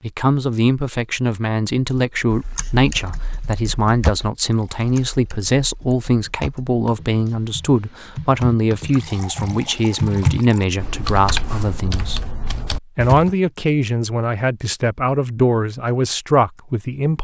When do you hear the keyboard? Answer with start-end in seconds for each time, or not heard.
1.9-13.3.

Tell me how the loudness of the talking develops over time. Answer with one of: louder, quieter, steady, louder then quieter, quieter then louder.
steady.